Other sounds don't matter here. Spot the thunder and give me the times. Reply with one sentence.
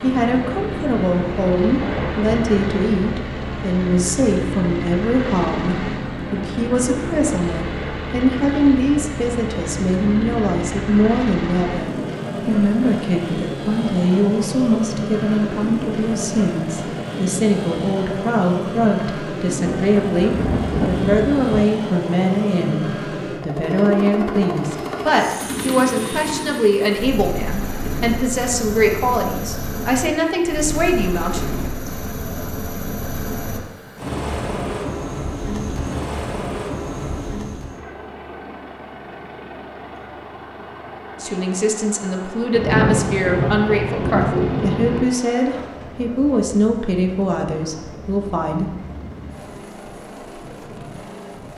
The thunder can be heard from 1.8 to 3.0 s, from 19.6 to 21.6 s and from 42.5 to 45.0 s.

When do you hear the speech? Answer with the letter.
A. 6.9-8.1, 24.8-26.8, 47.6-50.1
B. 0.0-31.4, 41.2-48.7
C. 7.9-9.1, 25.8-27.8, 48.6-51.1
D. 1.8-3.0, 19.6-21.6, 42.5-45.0
B.